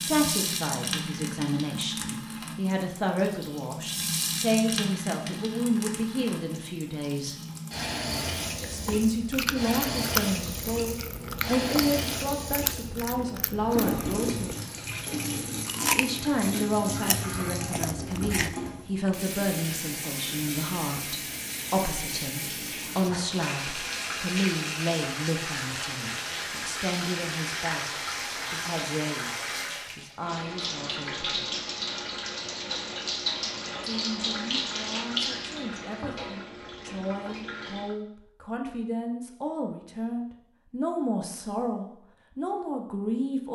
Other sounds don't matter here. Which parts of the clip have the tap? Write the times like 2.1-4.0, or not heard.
0.0-38.0.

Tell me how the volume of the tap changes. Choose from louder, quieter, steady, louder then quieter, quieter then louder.
steady.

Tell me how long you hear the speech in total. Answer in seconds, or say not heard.
39 s.